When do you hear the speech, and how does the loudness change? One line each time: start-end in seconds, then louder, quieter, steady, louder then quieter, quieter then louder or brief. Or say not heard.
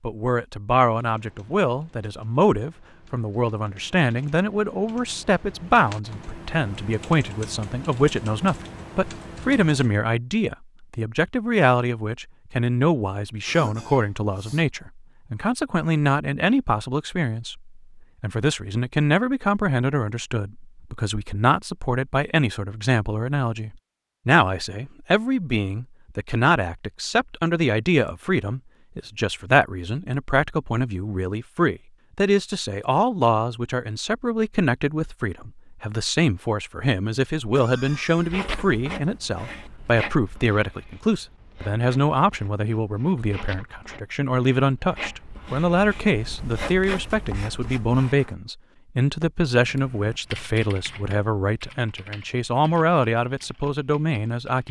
0.0-54.6 steady.